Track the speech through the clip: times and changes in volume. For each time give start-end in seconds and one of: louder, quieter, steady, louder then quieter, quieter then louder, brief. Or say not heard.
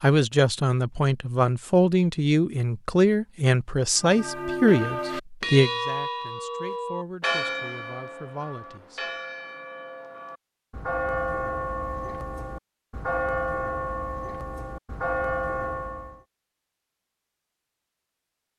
0.0-9.1 quieter.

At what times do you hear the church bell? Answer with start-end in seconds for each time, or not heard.
4.0-16.2.